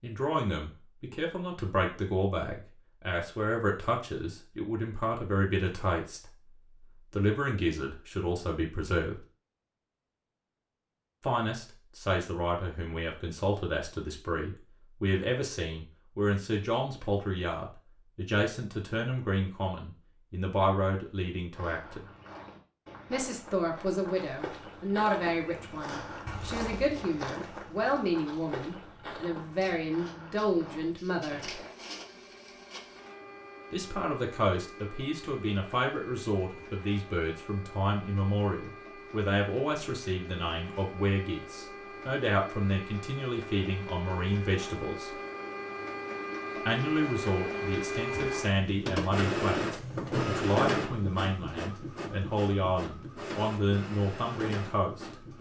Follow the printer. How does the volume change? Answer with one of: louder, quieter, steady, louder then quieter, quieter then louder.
louder.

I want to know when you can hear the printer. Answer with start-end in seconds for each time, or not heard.
29.6-55.3.